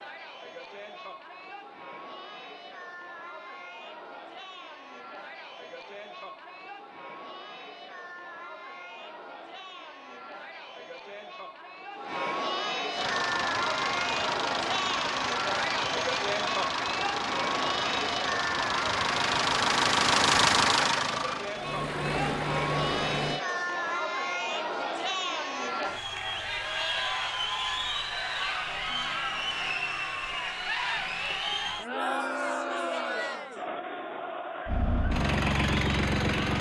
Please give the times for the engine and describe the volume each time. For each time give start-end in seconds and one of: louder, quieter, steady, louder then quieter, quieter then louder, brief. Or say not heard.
12.9-23.4 louder then quieter
34.6-36.5 brief.